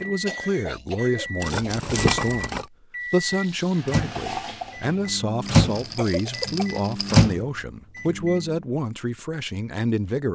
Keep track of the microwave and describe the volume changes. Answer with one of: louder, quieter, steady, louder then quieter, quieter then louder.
louder.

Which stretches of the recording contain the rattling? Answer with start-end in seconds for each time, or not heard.
1.4-2.7, 5.5-7.3.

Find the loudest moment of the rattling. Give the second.
2 s.